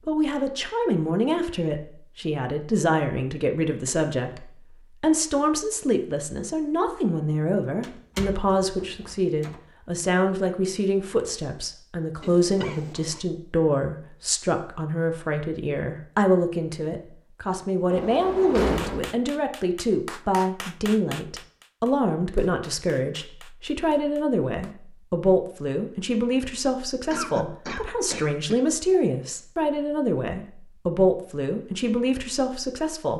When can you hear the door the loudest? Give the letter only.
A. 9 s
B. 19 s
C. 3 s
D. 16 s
B.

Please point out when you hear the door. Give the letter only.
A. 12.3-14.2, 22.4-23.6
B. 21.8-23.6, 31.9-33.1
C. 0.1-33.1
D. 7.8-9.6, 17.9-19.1
D.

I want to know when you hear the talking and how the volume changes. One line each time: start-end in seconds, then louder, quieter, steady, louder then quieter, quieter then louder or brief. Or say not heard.
0.1-33.1 steady.